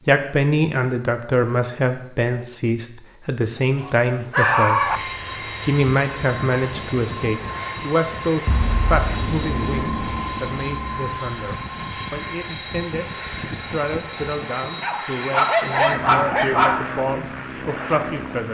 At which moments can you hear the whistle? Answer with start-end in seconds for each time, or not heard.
not heard.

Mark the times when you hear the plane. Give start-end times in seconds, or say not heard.
4.6-18.4.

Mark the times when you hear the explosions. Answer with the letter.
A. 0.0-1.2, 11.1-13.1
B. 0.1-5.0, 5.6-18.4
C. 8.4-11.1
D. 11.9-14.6
C.